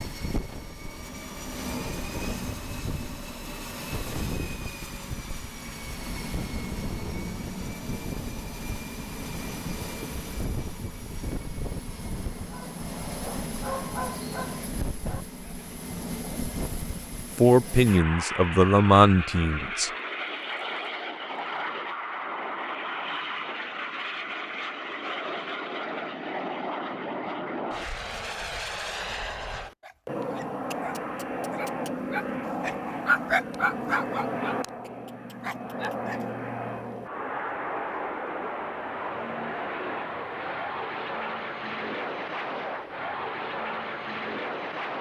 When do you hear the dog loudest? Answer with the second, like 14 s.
33 s.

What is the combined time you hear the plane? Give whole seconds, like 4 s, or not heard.
45 s.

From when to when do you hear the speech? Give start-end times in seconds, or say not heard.
17.4-19.9.